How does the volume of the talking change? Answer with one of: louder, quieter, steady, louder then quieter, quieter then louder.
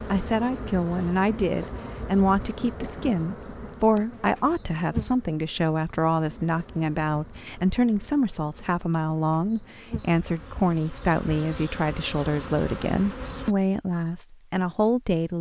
steady.